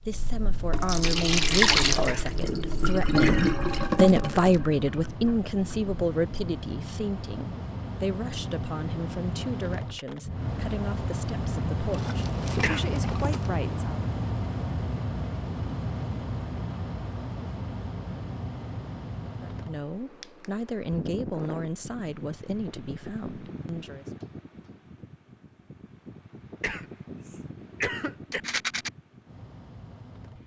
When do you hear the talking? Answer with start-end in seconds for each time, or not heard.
0.0-14.1, 19.4-24.1.